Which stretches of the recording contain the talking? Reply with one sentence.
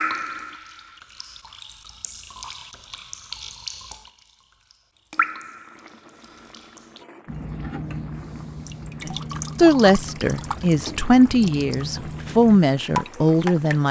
The talking can be heard from 9.1 to 13.8 s.